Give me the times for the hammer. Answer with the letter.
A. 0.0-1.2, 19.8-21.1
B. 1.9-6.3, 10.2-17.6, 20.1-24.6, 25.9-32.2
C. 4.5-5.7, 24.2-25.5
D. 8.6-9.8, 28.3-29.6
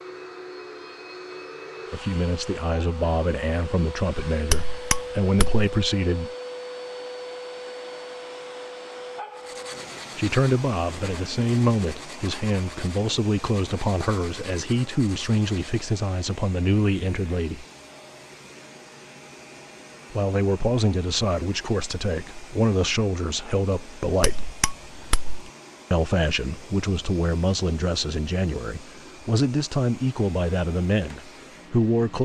C.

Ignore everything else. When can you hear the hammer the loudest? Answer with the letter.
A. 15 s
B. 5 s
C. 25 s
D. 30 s
B.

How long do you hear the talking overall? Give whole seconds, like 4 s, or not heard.
23 s.